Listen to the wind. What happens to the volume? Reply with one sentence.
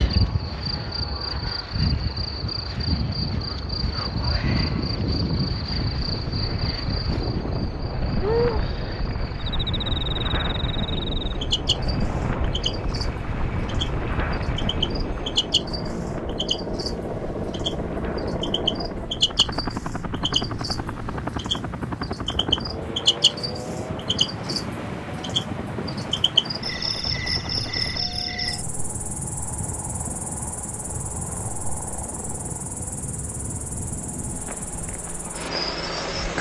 The loudness of the wind goes down.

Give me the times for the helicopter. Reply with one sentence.
The helicopter can be heard from 0.1 to 36.2 s.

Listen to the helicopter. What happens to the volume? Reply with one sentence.
The volume of the helicopter goes up, then down.